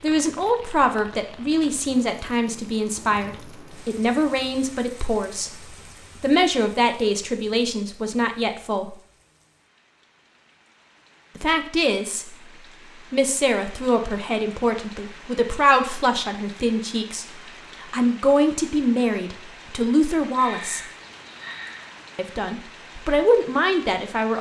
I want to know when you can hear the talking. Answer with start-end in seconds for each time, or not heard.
0.0-5.6, 6.2-8.9, 11.3-12.3, 13.1-20.8, 22.1-24.3.